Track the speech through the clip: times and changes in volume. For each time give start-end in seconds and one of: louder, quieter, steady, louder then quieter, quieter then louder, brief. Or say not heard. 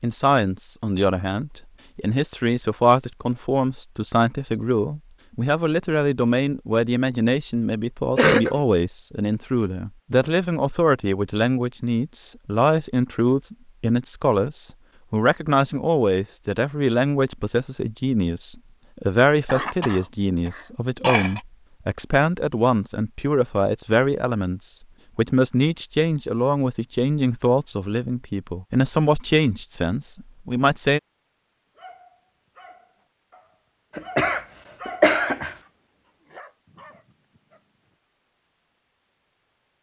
0.0-31.0 steady.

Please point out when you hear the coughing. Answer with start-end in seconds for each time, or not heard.
8.2-8.6, 19.4-21.4, 34.0-35.5.